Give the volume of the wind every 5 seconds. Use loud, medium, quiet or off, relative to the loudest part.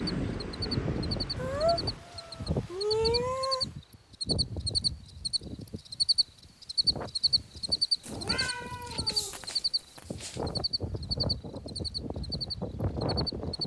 loud, medium, loud.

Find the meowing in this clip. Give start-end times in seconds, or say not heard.
1.4-3.6, 8.0-10.6.